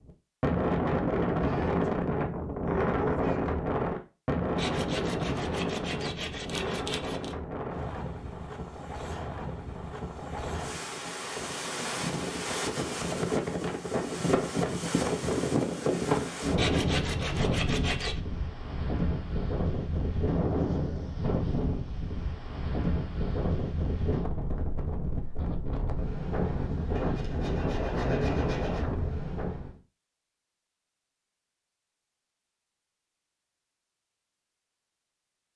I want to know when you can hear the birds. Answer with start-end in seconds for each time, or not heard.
not heard.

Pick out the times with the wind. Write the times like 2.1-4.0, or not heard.
0.0-29.8.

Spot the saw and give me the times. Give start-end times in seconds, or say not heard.
4.5-7.3, 16.6-18.2, 26.9-28.9.